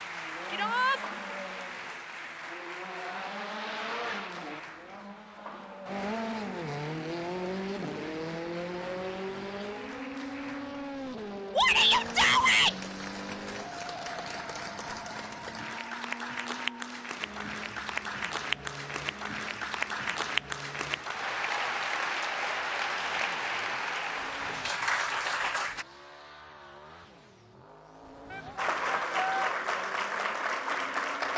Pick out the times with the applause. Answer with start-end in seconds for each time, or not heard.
0.0-25.9, 28.6-31.3.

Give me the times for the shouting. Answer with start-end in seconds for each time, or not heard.
0.5-1.0, 11.6-12.8, 28.3-29.6.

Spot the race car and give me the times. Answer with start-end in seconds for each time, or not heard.
0.0-31.3.